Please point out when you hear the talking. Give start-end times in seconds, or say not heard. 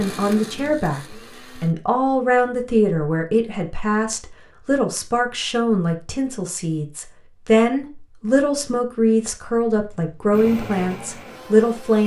0.0-12.0.